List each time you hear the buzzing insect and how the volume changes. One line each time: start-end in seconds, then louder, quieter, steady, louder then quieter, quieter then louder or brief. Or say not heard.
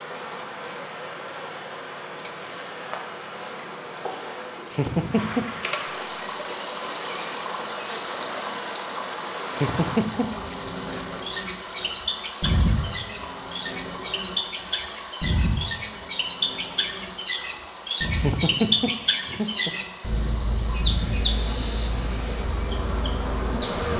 0.0-23.9 steady.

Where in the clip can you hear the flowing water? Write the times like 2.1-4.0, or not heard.
5.1-23.6.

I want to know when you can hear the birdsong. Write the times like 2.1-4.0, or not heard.
11.2-23.9.